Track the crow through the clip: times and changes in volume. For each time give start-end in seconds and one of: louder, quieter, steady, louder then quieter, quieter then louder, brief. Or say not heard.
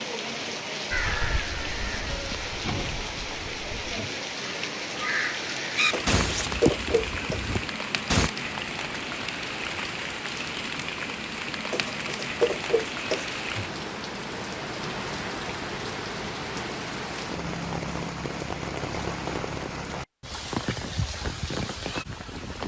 0.9-8.3 quieter then louder.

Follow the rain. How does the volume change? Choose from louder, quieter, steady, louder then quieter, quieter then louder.
steady.